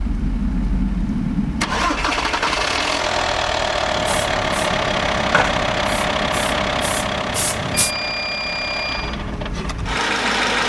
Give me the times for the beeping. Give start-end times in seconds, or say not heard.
7.7-9.2.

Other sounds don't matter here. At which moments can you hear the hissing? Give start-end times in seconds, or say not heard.
3.9-7.9.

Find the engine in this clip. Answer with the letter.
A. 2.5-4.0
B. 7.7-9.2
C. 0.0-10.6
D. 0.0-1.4
C.